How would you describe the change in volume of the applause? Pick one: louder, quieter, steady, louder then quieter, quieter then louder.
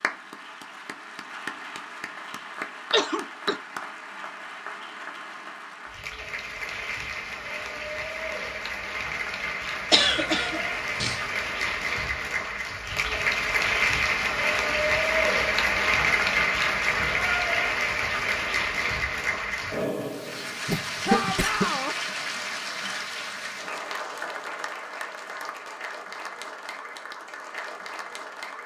louder then quieter.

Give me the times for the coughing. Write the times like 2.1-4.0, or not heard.
2.9-3.6, 9.9-11.2, 20.7-21.6.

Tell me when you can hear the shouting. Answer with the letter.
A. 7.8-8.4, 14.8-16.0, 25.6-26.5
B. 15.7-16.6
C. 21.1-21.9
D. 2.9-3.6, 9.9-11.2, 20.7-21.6
C.